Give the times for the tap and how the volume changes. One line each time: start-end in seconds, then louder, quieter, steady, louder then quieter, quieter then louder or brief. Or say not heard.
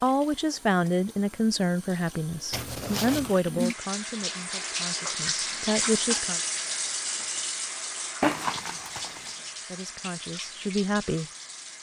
0.0-11.7 louder then quieter.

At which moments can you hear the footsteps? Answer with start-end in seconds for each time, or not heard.
not heard.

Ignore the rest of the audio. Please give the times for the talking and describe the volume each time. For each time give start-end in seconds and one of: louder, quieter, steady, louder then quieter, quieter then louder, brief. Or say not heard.
0.0-6.4 quieter then louder
9.7-11.3 brief.